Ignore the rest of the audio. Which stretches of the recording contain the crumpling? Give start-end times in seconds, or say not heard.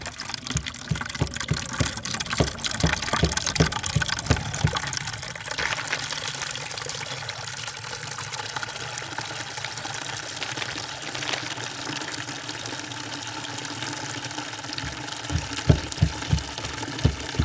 5.5-6.5, 10.2-11.6.